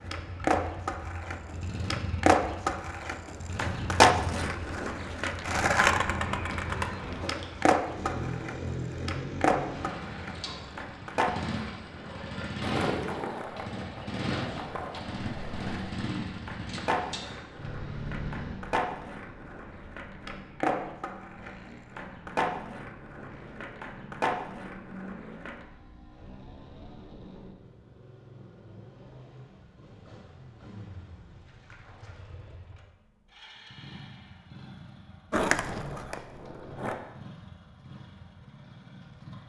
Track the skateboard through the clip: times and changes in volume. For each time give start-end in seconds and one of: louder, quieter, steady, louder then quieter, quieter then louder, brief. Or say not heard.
0.1-25.6 quieter
35.3-37.0 brief.